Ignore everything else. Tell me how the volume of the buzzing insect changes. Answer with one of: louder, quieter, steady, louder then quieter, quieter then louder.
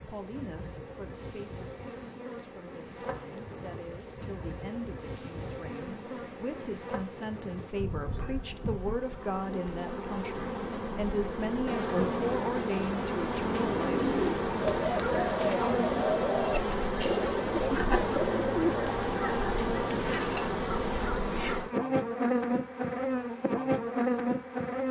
louder.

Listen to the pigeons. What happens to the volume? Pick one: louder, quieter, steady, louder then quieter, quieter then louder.
steady.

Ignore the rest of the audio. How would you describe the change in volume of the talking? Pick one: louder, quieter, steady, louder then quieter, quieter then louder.
louder.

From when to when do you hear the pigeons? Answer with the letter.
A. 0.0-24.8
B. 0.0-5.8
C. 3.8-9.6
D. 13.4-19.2
D.